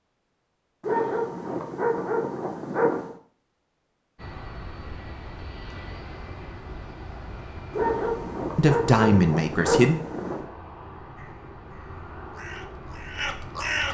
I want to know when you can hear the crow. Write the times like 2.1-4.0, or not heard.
11.2-13.8.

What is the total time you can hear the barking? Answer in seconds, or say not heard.
5 s.